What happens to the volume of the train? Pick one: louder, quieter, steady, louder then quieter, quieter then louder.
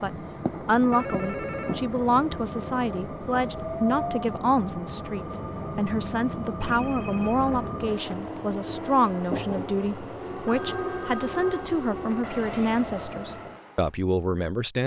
steady.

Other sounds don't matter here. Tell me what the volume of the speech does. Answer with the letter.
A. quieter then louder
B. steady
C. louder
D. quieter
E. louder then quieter
B.